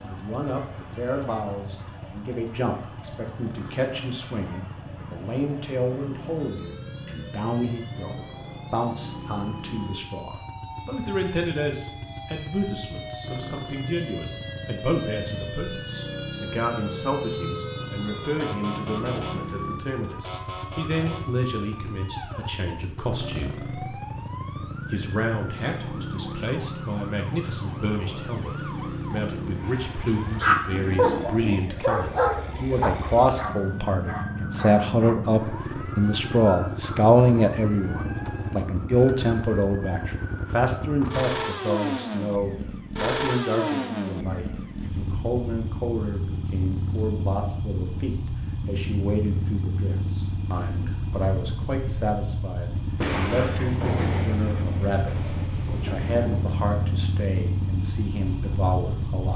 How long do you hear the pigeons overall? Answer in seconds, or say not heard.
not heard.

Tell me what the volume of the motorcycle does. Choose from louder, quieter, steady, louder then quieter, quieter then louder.
louder.